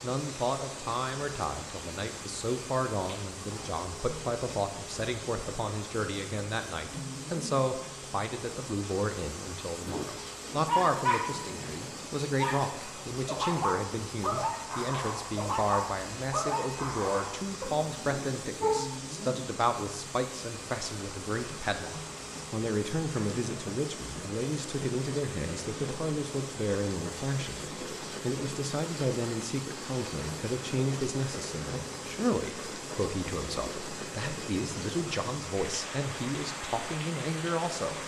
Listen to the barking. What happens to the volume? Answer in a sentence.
The volume of the barking goes down.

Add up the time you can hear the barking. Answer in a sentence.
You can hear the barking for 9 seconds altogether.